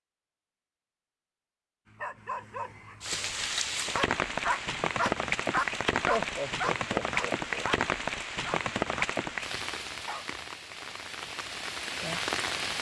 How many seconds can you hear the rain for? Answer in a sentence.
You can hear the rain for 10 seconds altogether.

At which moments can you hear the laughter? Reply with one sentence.
The laughter can be heard from 6.0 to 7.7 s.